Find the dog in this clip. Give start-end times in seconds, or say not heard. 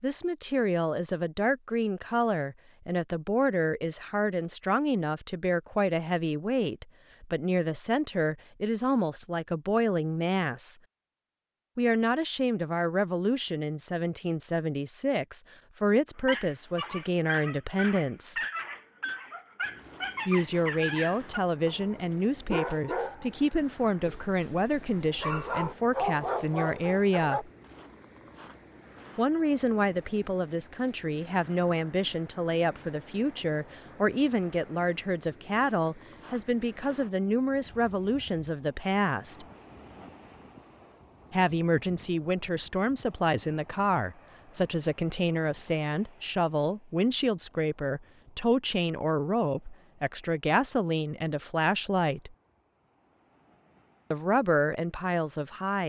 16.2-27.4.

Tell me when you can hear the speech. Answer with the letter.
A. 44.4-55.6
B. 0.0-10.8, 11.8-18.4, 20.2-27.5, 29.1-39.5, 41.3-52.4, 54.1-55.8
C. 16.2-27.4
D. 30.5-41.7
B.